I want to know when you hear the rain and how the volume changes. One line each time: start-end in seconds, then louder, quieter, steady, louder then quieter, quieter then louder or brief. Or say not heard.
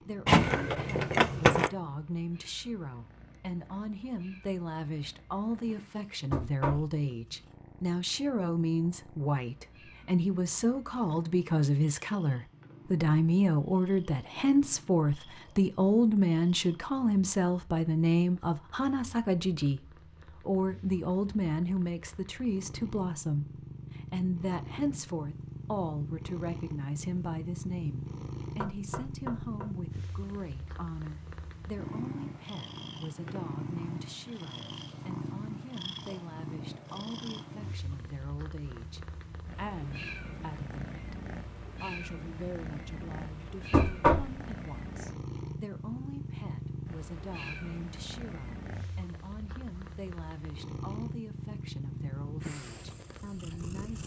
not heard.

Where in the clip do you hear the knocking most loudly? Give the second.
44 s.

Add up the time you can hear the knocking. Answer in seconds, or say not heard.
2 s.